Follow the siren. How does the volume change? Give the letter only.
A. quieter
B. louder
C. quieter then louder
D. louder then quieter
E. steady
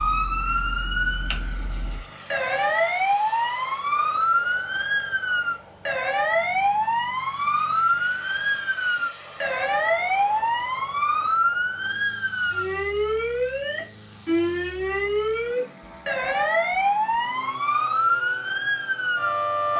E.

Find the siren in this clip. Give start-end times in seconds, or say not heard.
0.0-19.7.